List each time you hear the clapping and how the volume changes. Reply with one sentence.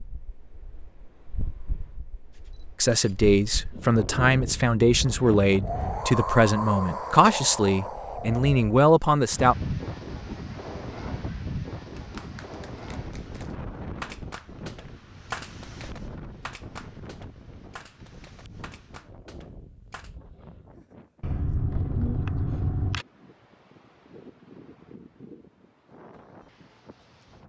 The clapping can be heard from 11.9 to 20.1 s, getting louder then quieter.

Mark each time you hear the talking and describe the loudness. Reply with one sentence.
The talking can be heard from 2.8 to 9.6 s, at a steady volume.